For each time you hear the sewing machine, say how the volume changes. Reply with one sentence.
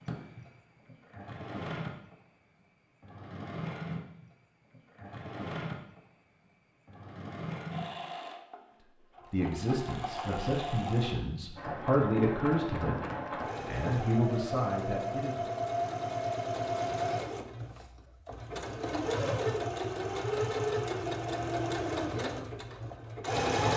The sewing machine can be heard from 0.0 to 23.7 s, getting louder.